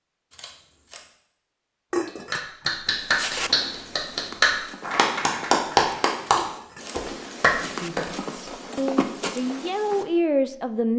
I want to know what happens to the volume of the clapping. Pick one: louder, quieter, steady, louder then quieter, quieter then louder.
steady.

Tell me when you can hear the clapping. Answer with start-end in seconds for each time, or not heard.
2.0-8.5.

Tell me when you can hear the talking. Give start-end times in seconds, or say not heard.
7.6-10.9.